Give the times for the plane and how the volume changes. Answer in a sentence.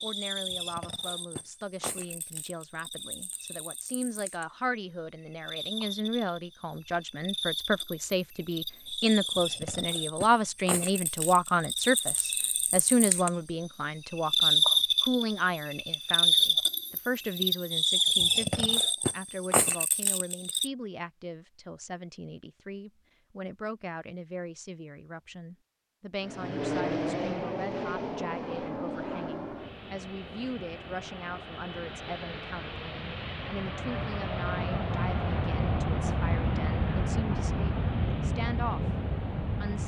You can hear the plane from 26.2 to 39.8 s, getting quieter then louder.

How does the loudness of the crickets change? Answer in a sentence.
The loudness of the crickets goes up.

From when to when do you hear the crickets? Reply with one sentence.
The crickets can be heard from 0.0 to 20.7 s.